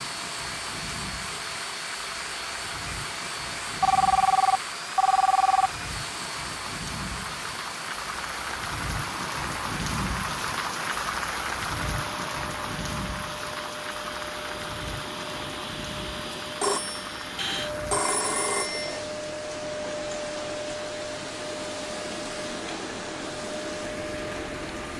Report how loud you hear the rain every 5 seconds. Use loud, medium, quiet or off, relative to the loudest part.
medium, loud, loud, medium, medium.